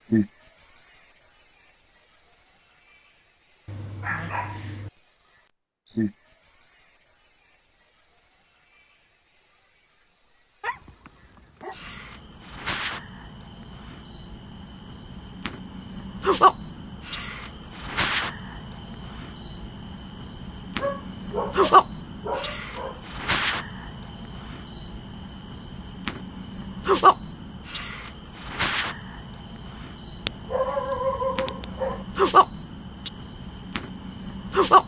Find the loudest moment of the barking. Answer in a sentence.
The volume of the barking peaks at 31 seconds.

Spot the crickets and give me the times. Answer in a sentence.
The crickets can be heard from 0.0 to 34.8 s.